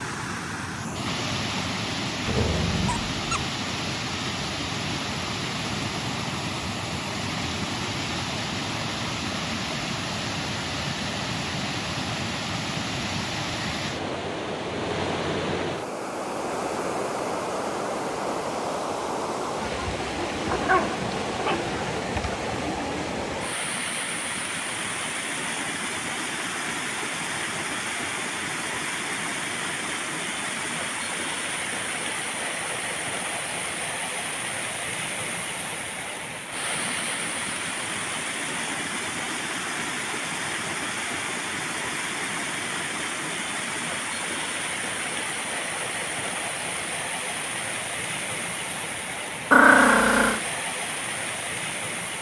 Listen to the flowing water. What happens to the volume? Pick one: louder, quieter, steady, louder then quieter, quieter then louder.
steady.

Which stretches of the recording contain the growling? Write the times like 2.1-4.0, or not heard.
2.2-3.5, 20.4-22.1, 49.5-50.4.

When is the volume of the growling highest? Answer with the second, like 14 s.
50 s.